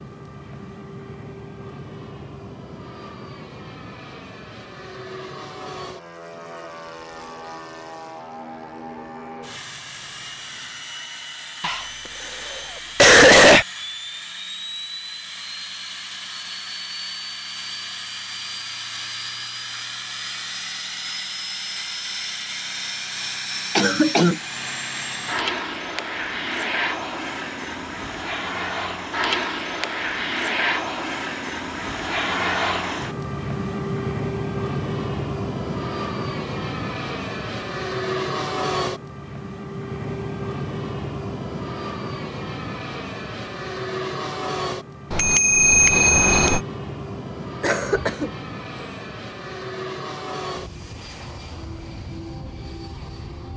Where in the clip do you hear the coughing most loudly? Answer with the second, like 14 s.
13 s.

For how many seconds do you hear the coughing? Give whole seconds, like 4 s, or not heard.
3 s.